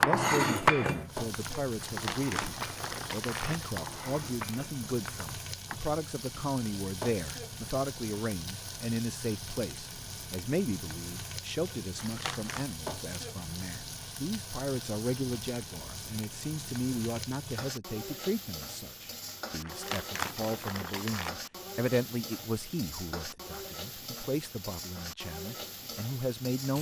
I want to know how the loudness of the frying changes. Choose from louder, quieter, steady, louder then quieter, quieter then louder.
steady.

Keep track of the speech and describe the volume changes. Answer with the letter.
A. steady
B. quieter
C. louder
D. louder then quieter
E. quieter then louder
A.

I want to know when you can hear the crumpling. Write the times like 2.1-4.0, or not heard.
1.8-3.8, 11.9-12.7, 19.6-21.4.